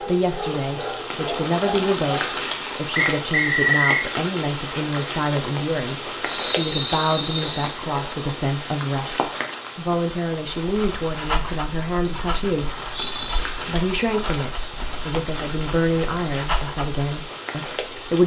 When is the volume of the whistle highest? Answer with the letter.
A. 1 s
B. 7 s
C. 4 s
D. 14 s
C.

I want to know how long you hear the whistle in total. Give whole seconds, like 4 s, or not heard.
3 s.